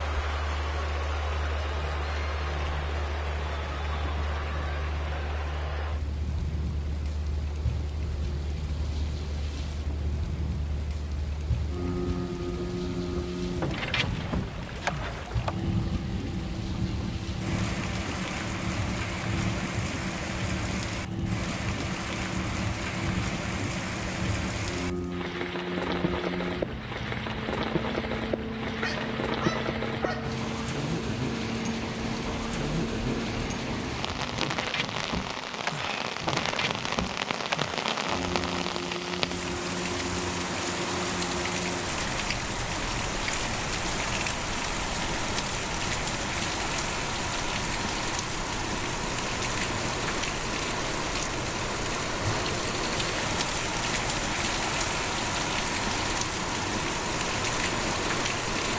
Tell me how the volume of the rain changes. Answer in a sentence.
The loudness of the rain goes up.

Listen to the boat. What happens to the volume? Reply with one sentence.
The loudness of the boat goes up, then down.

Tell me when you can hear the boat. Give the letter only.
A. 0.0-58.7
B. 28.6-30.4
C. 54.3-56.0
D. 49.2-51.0
A.